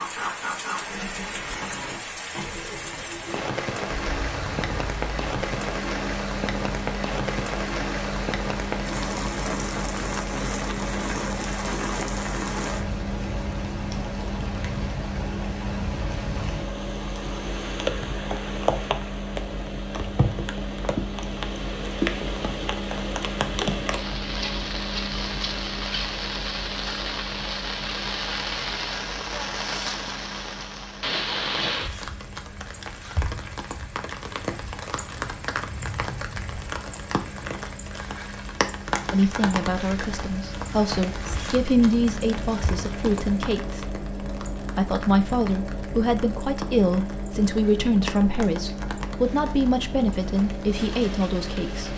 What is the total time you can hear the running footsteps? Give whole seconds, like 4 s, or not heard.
not heard.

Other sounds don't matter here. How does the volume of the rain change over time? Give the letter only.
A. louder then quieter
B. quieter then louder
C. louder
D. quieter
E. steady
D.